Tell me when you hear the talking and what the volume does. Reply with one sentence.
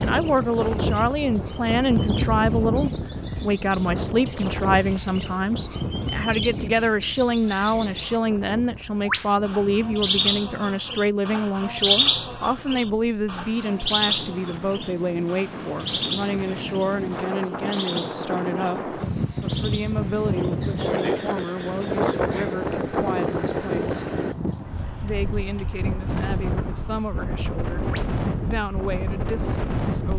You can hear the talking from 0.0 to 30.1 s, getting quieter.